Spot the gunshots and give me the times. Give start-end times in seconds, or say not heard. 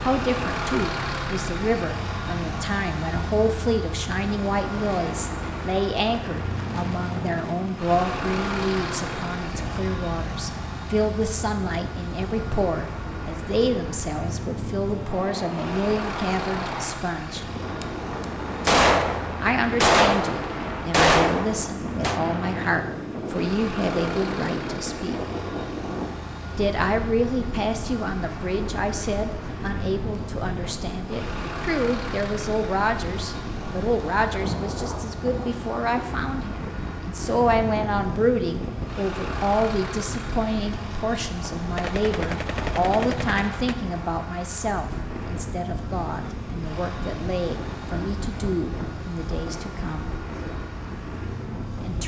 17.8-22.2, 41.8-43.8.